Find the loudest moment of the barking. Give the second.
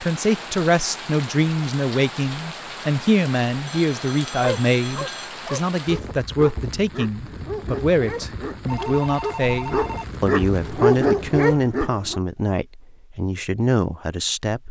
11 s.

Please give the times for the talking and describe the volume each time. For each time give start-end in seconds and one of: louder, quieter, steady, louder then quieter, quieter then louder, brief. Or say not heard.
0.0-14.6 steady.